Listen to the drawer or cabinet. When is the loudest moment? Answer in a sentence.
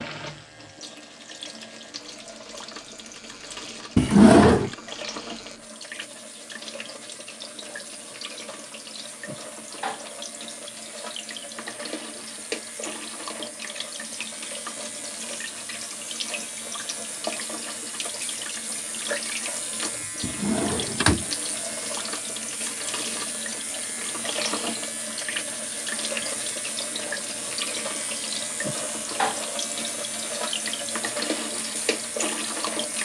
The loudest moment of the drawer or cabinet is at 4 seconds.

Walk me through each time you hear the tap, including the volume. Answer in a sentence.
The tap can be heard from 0.0 to 32.9 s, getting louder.